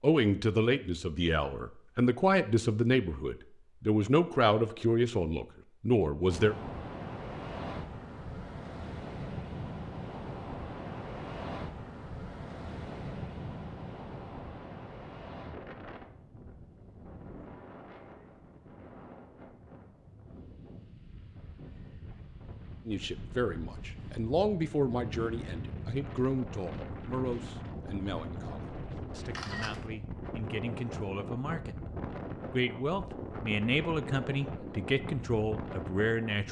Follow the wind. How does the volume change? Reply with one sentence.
The volume of the wind goes down, then up.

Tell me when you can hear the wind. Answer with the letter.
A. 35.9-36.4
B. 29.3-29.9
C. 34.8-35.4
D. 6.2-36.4
D.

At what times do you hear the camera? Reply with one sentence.
The camera can be heard from 29.3 to 29.9 s.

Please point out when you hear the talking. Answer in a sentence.
You can hear the talking from 0.0 to 6.5 s and from 22.9 to 36.4 s.